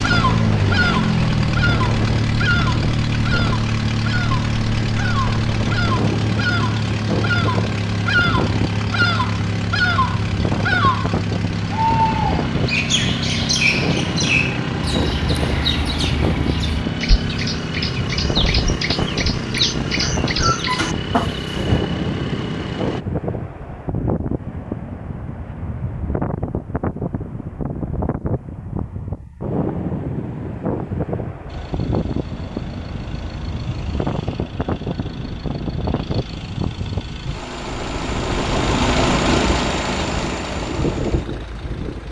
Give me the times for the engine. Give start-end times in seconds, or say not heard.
0.0-23.1, 31.4-42.0.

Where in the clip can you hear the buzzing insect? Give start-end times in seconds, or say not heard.
not heard.